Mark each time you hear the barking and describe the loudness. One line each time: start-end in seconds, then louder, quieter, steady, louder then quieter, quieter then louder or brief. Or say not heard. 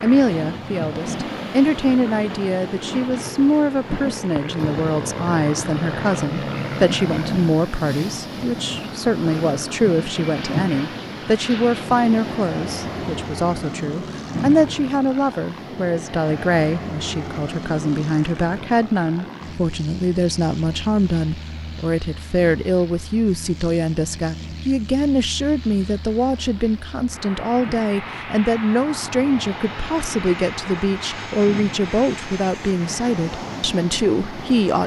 not heard.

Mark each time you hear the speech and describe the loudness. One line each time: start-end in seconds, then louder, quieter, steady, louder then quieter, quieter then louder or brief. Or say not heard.
0.0-34.8 steady.